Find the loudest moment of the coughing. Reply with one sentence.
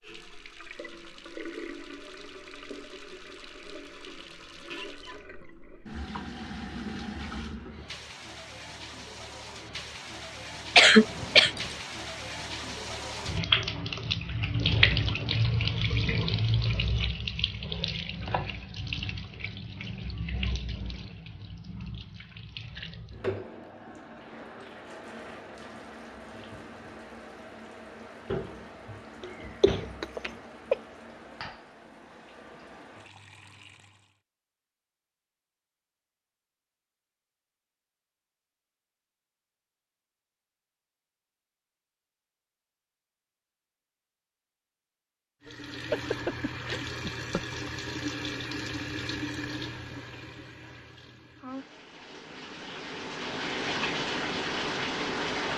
The volume of the coughing peaks at 11 seconds.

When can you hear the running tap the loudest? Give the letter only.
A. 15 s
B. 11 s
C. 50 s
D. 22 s
A.